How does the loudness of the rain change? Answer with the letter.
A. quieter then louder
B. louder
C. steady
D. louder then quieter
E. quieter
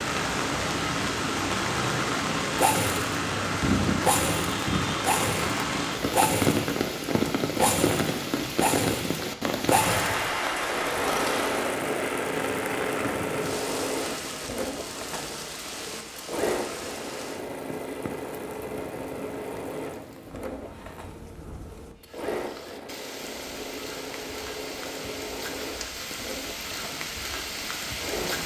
A.